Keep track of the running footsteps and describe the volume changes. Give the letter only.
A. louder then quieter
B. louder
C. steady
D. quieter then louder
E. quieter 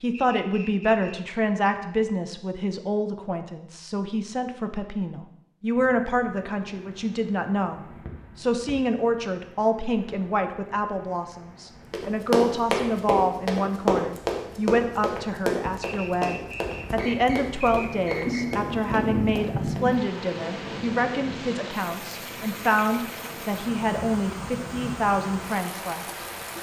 E.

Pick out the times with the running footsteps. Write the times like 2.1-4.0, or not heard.
11.9-19.9.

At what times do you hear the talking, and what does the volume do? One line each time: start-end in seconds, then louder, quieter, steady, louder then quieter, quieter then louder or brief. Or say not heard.
0.0-26.2 steady.